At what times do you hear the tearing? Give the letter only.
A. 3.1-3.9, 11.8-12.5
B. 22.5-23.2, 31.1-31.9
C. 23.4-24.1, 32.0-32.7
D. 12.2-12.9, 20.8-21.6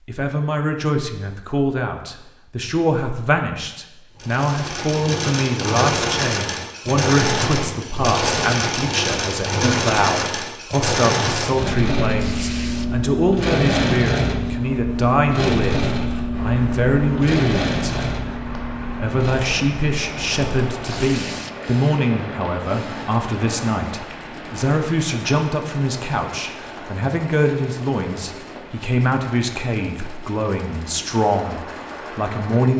D.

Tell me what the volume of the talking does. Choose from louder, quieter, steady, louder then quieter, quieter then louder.
steady.